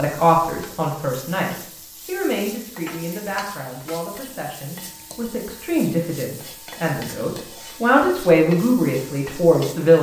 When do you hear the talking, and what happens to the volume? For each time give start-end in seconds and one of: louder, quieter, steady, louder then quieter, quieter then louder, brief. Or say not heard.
0.0-9.9 louder.